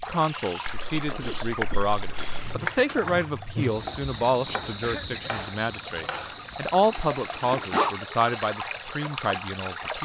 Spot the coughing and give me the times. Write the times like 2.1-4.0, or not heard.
4.8-5.3.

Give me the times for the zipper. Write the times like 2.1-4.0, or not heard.
0.7-2.6, 6.9-8.0.